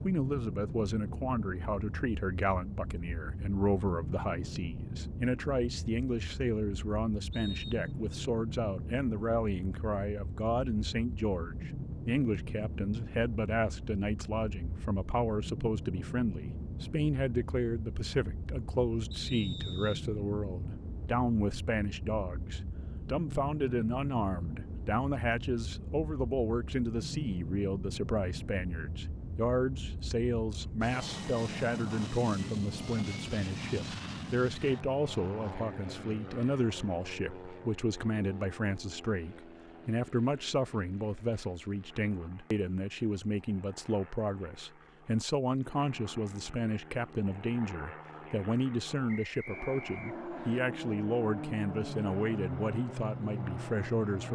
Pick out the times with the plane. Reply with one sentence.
You can hear the plane from 0.0 to 54.3 s.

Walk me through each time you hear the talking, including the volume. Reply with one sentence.
The talking can be heard from 0.0 to 54.3 s, at a steady volume.